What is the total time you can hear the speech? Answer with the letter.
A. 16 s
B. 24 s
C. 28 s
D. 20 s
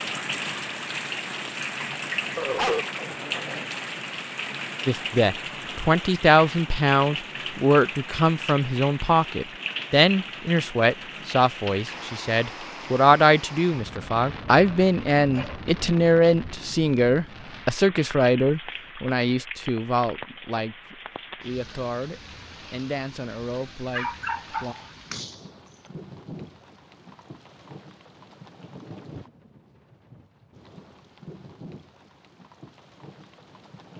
D.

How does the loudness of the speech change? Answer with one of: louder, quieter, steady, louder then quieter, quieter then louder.
quieter.